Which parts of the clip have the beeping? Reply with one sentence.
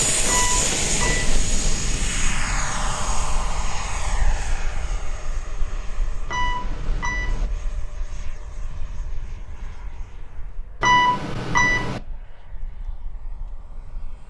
The beeping can be heard from 0.2 to 1.4 s, from 6.2 to 7.5 s and from 10.8 to 12.0 s.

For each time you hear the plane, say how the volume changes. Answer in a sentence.
You can hear the plane from 0.0 to 14.2 s, getting quieter.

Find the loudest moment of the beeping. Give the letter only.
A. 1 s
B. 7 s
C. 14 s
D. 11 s
D.